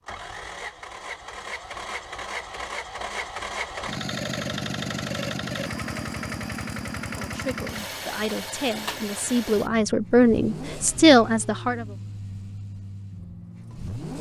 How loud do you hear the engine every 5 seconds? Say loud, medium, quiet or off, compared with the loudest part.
loud, loud, medium.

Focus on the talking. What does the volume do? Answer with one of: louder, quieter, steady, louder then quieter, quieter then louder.
louder.